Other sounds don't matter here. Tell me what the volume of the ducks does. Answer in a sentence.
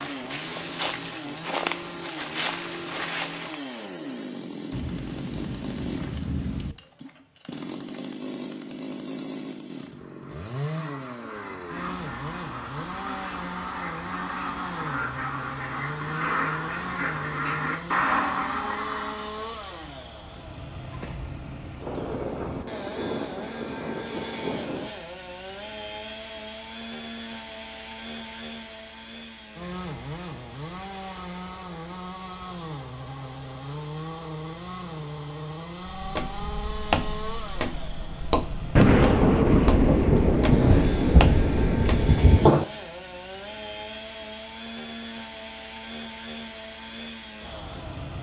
The loudness of the ducks goes up.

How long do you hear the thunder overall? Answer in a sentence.
You can hear the thunder for 9 seconds altogether.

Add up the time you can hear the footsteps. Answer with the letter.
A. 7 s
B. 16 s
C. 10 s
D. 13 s
C.